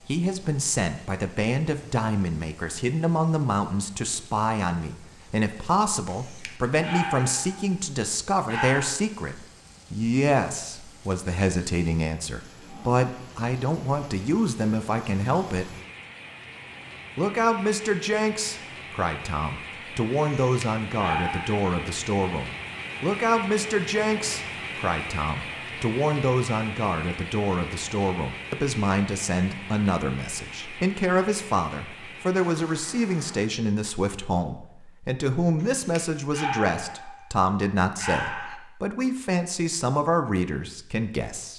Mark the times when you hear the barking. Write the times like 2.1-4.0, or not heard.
6.1-7.8, 8.4-8.9, 20.2-21.6, 35.6-37.2, 38.0-38.6.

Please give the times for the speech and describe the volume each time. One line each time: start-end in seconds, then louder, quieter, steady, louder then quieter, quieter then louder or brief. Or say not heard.
0.1-15.7 steady
17.1-41.5 steady.